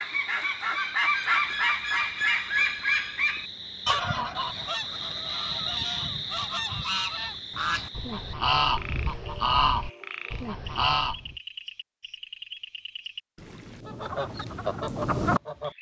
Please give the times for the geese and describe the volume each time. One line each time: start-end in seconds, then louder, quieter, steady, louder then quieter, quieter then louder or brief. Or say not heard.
0.0-11.3 quieter then louder
13.8-15.7 brief.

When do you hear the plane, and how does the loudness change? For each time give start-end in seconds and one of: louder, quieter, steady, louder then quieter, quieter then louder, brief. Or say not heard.
not heard.